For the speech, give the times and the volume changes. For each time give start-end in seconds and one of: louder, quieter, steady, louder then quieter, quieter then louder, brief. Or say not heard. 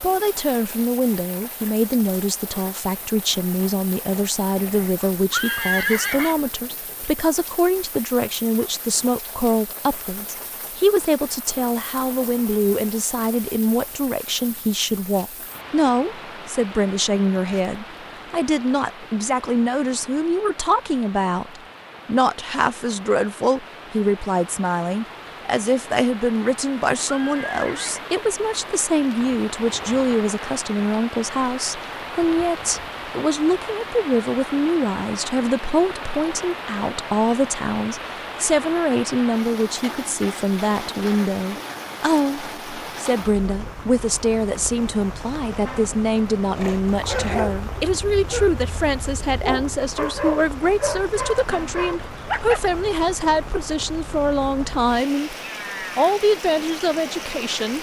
0.0-55.4 steady
56.0-57.7 brief.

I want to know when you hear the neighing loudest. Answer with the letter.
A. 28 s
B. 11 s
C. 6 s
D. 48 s
C.